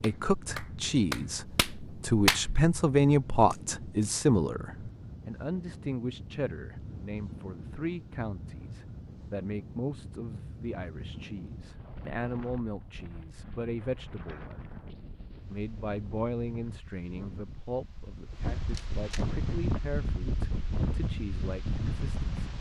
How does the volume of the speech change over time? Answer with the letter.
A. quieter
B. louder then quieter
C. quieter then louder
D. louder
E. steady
A.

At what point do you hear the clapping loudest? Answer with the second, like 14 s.
2 s.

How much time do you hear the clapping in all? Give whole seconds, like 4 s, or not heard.
3 s.